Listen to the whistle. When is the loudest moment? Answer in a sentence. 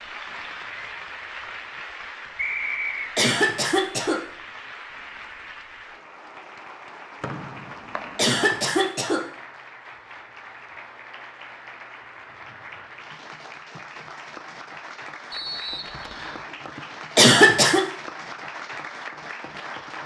The volume of the whistle peaks at 3 seconds.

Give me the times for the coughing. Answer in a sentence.
You can hear the coughing from 3.1 to 4.2 s, from 8.2 to 9.2 s and from 17.1 to 17.8 s.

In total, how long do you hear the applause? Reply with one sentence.
The applause can be heard for 20 seconds in total.